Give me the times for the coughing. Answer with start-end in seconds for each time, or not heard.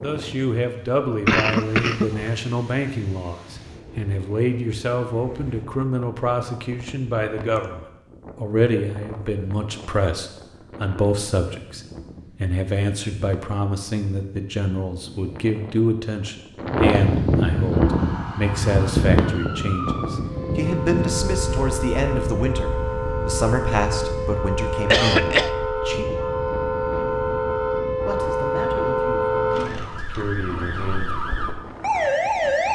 1.2-2.3, 24.9-25.5.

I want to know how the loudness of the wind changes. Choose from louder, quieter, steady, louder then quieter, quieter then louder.
louder then quieter.